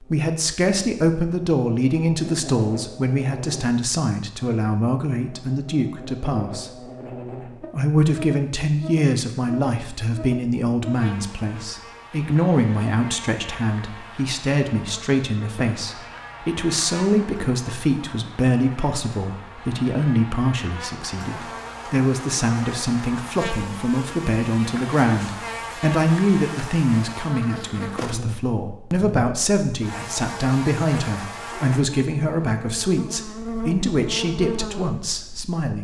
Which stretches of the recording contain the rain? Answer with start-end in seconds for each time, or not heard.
not heard.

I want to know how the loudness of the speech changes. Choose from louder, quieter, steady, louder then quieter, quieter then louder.
steady.